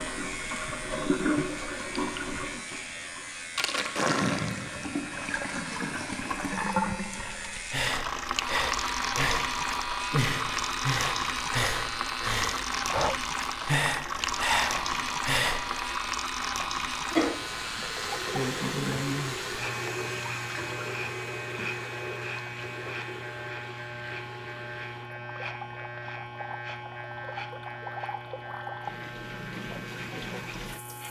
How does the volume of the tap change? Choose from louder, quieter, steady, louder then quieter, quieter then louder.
quieter.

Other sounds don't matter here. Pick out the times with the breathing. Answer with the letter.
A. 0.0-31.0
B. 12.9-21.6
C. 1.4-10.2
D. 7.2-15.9
D.